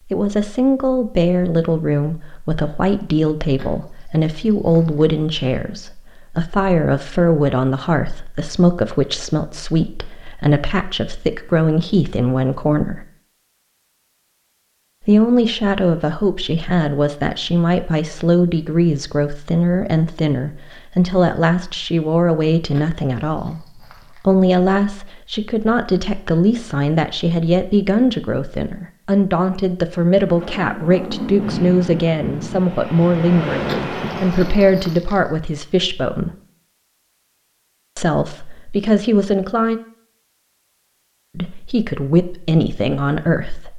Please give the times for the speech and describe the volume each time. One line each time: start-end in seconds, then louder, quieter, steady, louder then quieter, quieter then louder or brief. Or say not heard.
0.1-13.1 steady
15.0-36.3 steady
38.0-39.8 brief
41.4-43.7 brief.